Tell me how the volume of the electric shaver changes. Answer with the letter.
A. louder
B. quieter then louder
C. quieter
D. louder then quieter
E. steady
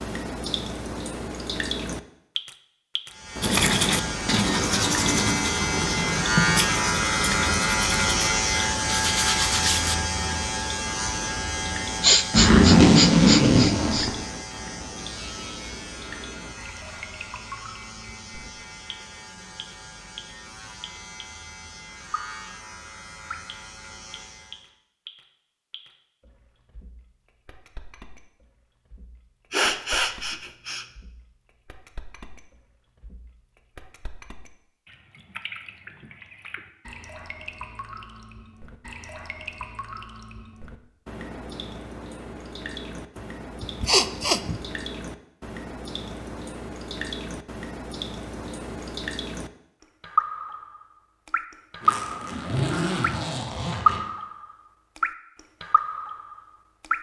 C.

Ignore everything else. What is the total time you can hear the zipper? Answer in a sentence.
You can hear the zipper for 4 seconds altogether.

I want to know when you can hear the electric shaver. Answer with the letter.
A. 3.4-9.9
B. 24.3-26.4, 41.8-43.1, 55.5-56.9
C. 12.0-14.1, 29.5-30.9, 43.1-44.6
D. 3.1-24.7
D.